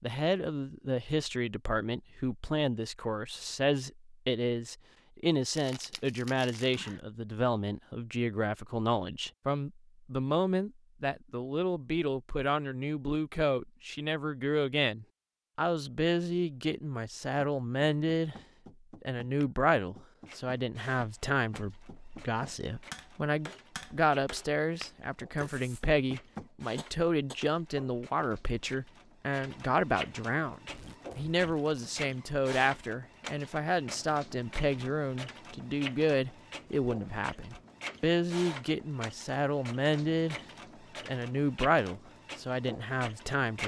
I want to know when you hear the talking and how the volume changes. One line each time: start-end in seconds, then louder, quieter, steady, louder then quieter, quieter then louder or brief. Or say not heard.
0.0-18.4 steady
19.0-40.4 steady
41.0-43.6 brief.